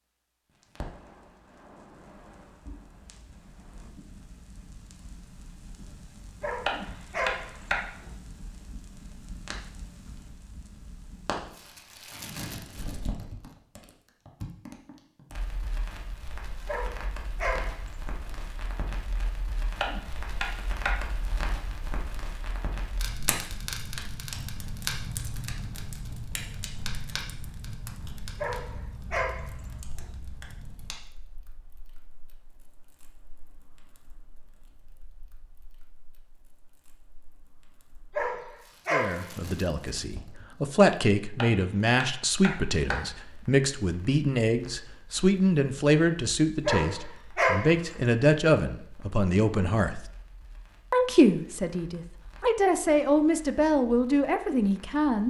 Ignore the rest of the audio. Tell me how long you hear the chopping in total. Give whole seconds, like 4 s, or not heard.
4 s.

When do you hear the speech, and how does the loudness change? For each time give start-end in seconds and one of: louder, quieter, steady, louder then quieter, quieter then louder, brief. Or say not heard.
38.9-50.0 steady
50.9-55.2 louder.